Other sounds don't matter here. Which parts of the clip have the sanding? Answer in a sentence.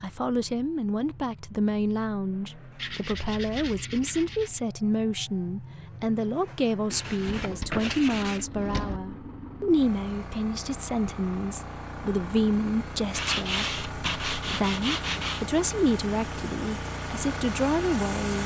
You can hear the sanding from 2.8 to 4.6 s, from 6.9 to 8.4 s and from 13.1 to 15.4 s.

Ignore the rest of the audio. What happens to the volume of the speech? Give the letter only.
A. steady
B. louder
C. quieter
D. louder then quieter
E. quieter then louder
A.